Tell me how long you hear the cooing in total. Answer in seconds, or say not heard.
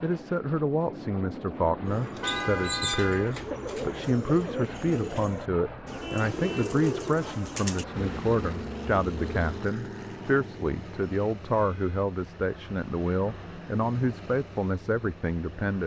8 s.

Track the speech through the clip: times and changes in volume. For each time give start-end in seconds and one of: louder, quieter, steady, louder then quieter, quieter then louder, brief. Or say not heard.
0.0-15.8 steady.